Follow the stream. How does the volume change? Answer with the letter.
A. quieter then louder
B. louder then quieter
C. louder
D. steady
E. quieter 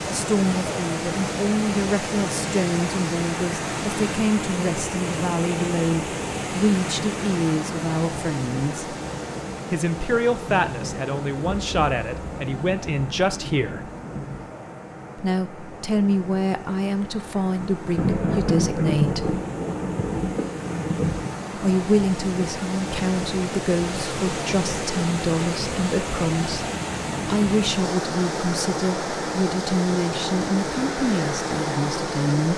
A.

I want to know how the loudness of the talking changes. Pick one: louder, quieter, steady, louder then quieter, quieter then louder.
steady.